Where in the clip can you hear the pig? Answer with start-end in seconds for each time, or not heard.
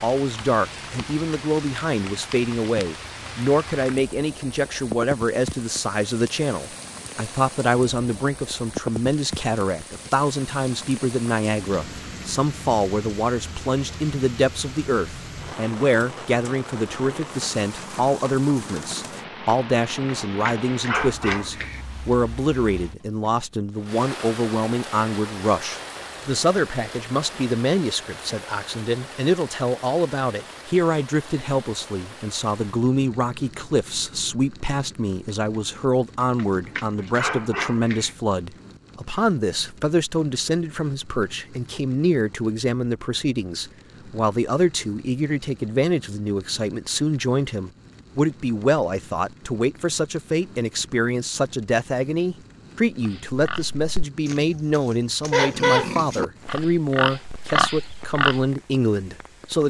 53.0-58.5.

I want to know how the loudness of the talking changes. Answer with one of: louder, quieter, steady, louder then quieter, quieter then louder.
steady.